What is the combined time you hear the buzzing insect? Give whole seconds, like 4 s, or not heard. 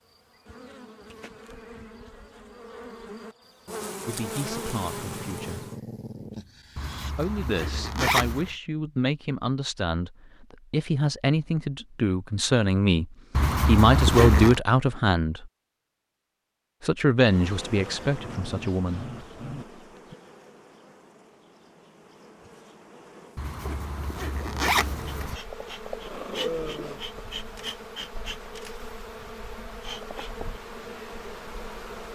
21 s.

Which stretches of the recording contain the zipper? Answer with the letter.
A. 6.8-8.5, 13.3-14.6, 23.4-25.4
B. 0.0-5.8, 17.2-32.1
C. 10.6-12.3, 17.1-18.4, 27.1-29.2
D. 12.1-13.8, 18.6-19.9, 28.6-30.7
A.